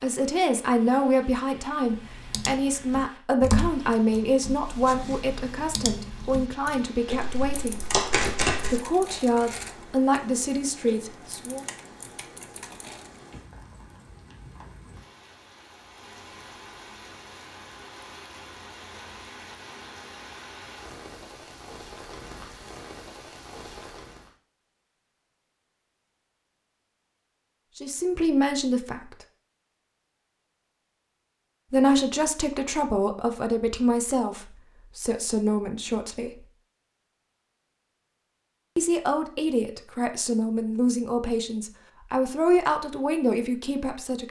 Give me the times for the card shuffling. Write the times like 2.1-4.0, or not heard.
7.1-8.8.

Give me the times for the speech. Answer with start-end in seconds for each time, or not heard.
0.0-7.8, 8.7-11.7, 27.8-29.2, 31.7-36.5, 38.8-44.2.